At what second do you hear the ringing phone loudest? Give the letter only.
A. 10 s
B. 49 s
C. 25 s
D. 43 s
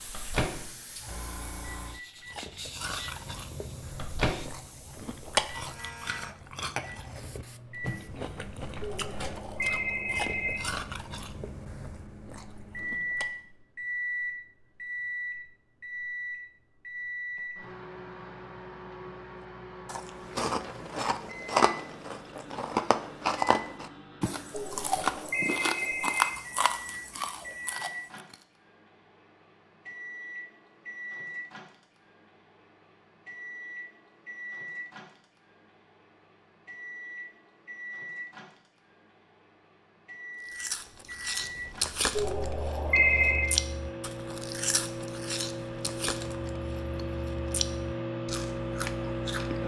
D.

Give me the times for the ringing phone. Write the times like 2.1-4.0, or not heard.
8.8-10.6, 24.5-26.3, 42.1-43.5.